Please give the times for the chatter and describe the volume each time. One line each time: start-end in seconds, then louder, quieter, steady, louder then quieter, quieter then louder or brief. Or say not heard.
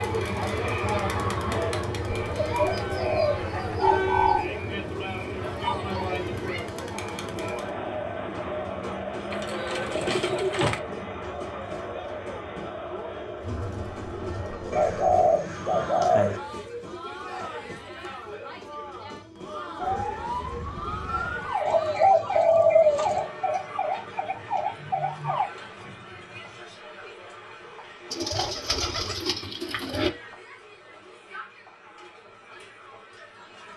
0.0-33.7 quieter.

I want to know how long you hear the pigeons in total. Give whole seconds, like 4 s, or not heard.
9 s.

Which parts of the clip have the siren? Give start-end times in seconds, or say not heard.
19.8-25.5.